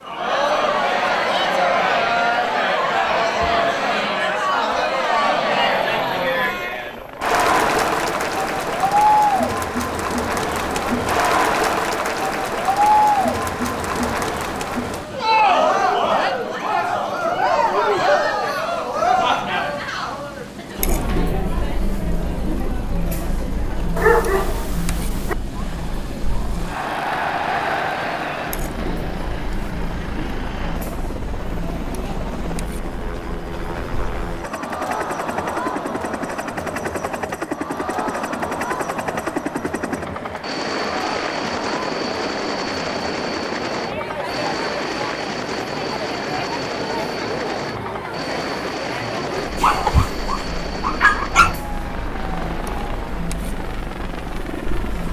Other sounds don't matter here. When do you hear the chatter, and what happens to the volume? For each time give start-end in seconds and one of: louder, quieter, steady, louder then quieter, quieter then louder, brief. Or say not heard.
0.1-55.0 quieter.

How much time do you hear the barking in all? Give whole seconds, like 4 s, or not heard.
3 s.